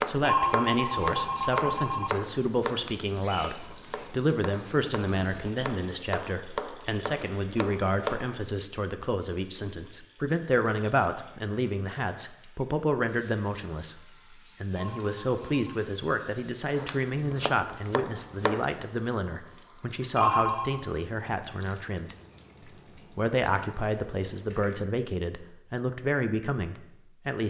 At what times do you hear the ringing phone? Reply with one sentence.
The ringing phone can be heard from 0.2 to 2.1 s, from 14.7 to 15.9 s and from 20.1 to 20.8 s.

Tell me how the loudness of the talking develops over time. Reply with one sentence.
The volume of the talking stays about the same.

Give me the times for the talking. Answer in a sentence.
You can hear the talking from 0.1 to 14.0 s, from 14.6 to 22.1 s and from 23.1 to 27.4 s.